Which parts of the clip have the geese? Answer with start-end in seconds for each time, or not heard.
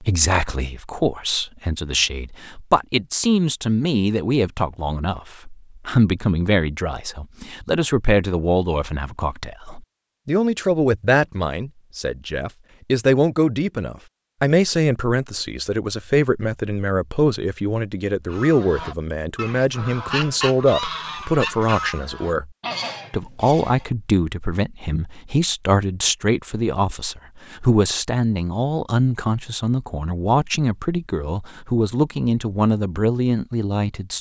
18.3-23.9.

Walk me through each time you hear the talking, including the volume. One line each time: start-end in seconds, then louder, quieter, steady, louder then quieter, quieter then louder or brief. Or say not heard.
0.0-22.5 steady
23.1-34.1 steady.